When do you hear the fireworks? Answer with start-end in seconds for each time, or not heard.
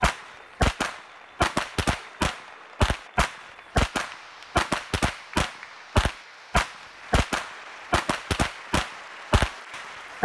0.0-10.1.